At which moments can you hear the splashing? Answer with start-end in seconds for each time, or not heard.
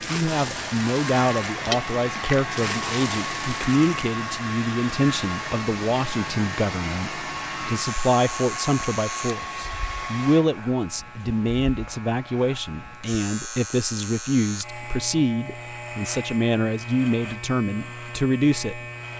0.0-4.0.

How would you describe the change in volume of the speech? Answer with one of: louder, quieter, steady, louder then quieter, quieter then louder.
steady.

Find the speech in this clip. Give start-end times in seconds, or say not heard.
0.1-18.8.